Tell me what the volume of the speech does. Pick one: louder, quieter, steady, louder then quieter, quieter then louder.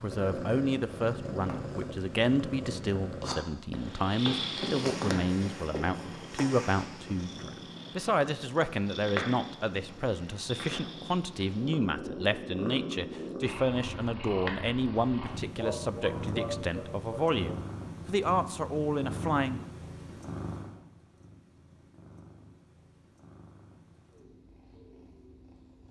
steady.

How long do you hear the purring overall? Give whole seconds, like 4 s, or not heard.
26 s.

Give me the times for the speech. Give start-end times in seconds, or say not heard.
0.0-19.6.